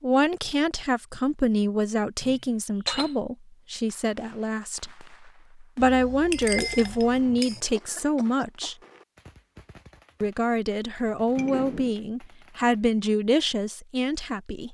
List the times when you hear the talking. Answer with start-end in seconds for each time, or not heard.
0.0-8.8, 10.2-14.6.